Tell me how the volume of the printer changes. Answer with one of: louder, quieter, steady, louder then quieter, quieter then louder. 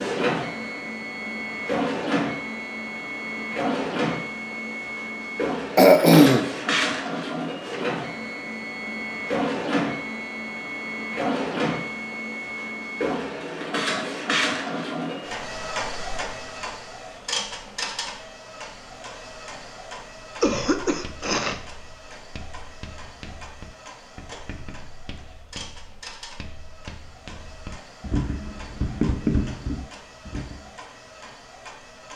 quieter.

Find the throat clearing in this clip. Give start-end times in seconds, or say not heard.
5.8-6.5, 20.4-21.6.